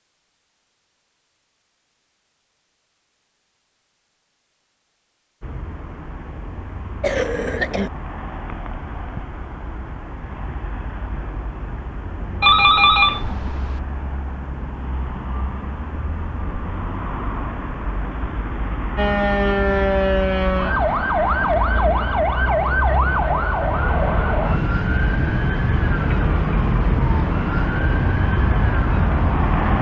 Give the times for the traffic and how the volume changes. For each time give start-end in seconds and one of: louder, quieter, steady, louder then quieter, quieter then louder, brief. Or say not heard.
5.4-29.7 louder.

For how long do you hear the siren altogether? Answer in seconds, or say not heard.
11 s.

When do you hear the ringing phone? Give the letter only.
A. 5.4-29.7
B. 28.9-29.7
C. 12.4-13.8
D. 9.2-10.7
C.